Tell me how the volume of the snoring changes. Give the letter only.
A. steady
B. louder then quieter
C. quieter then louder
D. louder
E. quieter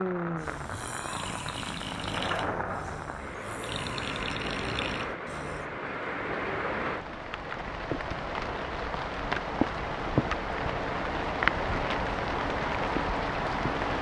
C.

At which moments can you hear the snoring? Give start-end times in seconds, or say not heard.
0.3-5.7.